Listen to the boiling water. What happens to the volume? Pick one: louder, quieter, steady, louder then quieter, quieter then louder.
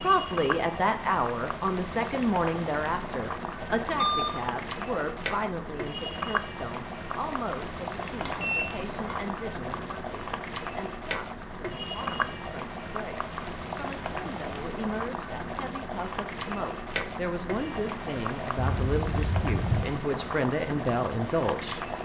steady.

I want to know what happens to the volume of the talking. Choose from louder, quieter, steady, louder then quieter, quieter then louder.
quieter then louder.